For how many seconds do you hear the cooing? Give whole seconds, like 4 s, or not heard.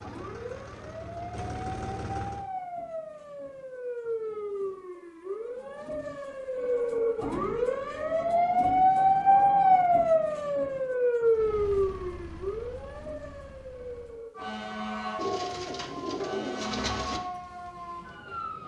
2 s.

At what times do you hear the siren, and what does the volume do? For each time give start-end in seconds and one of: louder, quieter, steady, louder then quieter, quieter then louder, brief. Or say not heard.
0.0-18.6 louder then quieter.